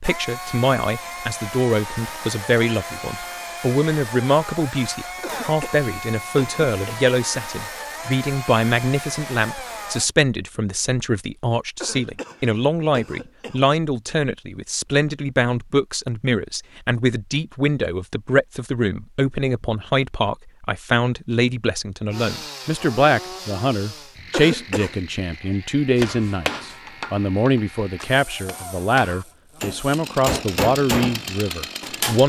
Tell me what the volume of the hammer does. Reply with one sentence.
The volume of the hammer goes down, then up.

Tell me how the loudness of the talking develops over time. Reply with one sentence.
The volume of the talking stays about the same.